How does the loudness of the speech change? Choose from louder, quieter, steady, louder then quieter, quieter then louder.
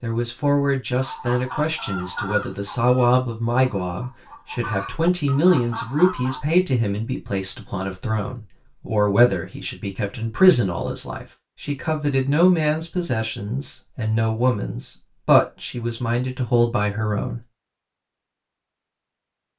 steady.